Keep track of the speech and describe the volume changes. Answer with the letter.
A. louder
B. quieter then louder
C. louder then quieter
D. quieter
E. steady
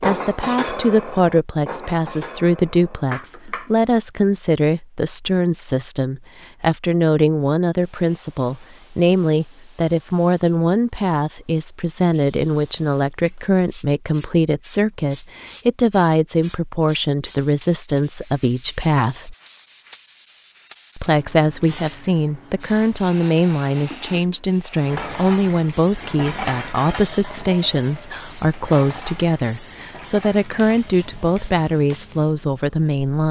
E.